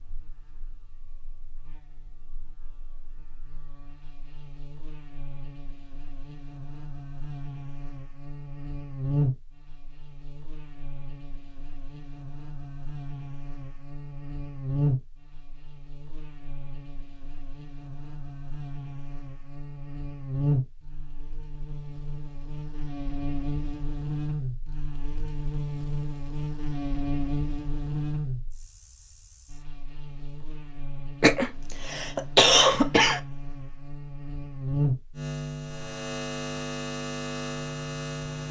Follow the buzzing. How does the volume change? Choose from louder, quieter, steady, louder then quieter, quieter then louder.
louder.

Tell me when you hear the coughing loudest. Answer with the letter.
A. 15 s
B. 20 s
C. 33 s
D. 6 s
C.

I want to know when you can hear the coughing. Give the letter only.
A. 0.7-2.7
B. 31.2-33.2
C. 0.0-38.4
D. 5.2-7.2
B.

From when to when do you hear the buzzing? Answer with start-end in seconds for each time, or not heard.
0.0-38.4.